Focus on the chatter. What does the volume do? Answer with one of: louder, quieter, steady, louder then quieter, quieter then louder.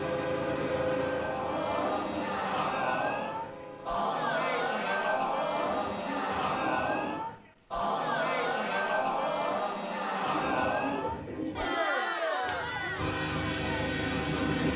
steady.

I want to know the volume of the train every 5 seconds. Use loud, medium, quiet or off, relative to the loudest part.
loud, off, loud.